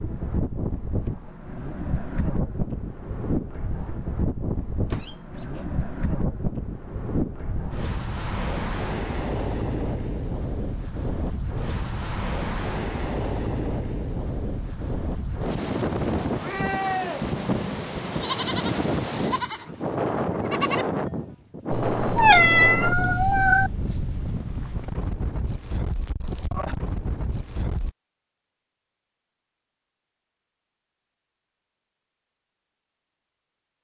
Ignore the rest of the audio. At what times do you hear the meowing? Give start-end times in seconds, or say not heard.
4.9-5.7, 21.7-23.7.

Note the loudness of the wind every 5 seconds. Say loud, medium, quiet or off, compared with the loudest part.
loud, loud, loud, loud, loud, medium, off.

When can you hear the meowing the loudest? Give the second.
22 s.